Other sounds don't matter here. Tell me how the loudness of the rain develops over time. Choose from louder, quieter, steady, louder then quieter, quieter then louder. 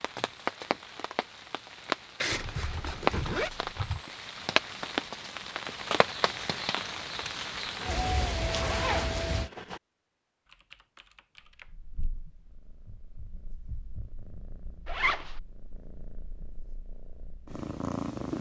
steady.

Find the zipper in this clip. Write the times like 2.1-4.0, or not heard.
2.2-3.5, 7.8-9.8, 14.8-15.3.